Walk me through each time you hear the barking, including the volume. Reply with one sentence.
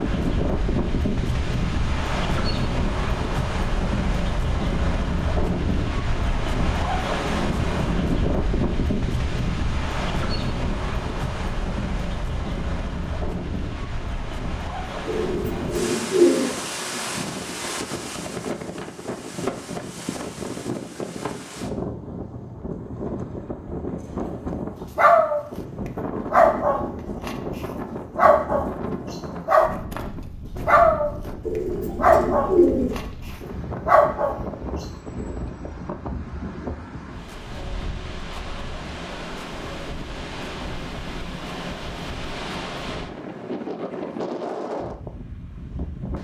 You can hear the barking briefly from 24.9 to 25.4 s; and from 26.3 to 34.4 s, getting louder.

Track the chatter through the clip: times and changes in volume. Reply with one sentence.
The chatter can't be heard in this clip.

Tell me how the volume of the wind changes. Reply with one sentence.
The loudness of the wind goes down.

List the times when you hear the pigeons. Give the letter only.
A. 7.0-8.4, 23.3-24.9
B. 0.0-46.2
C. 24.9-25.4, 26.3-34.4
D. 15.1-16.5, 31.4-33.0
D.